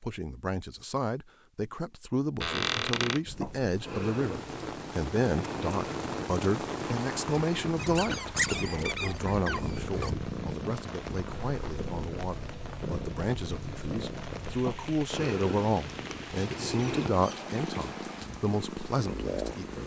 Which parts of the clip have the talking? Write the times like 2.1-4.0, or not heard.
0.0-19.8.